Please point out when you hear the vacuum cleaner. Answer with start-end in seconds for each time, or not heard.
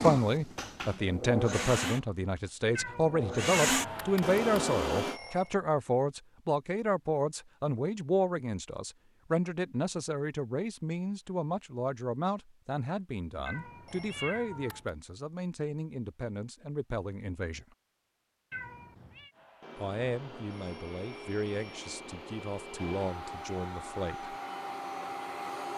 0.0-5.2, 19.4-25.7.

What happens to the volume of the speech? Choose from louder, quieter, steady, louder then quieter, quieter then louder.
quieter.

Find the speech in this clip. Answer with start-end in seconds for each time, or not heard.
0.0-17.8, 19.8-24.4.